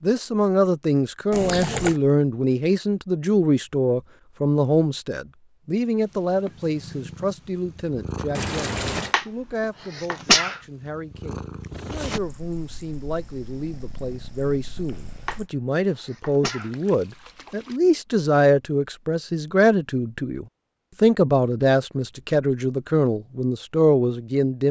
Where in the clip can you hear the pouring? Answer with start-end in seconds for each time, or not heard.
1.3-1.9, 8.3-9.2, 16.6-17.8.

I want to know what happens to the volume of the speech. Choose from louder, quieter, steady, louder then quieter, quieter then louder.
quieter then louder.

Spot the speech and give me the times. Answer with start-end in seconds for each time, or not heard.
0.0-24.6.